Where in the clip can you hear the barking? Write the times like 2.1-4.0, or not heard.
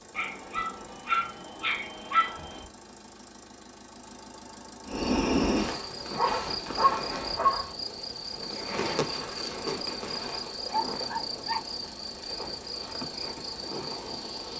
0.1-2.6, 6.2-7.8, 10.7-11.8.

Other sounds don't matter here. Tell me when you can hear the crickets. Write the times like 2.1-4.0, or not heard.
4.8-14.5.